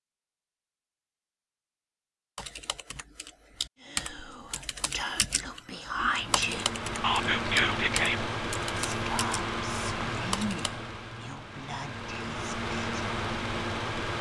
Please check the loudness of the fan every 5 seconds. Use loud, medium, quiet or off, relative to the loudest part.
off, loud, loud.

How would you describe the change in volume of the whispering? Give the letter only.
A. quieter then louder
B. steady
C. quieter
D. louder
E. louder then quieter
E.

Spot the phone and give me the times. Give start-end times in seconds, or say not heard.
not heard.